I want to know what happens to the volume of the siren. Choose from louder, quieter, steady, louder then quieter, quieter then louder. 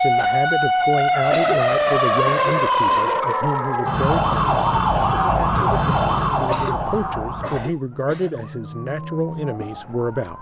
quieter.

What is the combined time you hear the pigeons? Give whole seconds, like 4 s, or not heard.
not heard.